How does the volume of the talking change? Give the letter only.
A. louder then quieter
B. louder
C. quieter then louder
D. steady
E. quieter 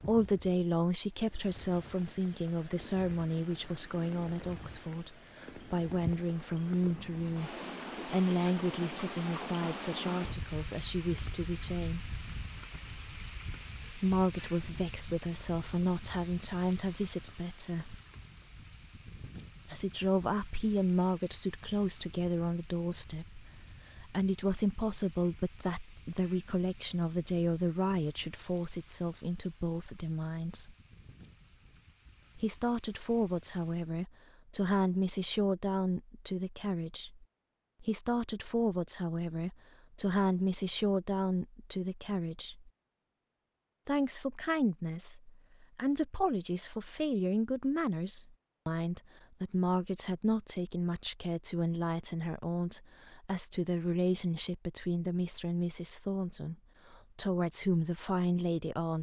D.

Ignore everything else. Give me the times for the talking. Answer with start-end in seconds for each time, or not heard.
0.0-12.1, 13.9-17.9, 19.6-30.8, 32.4-42.7, 43.9-58.9.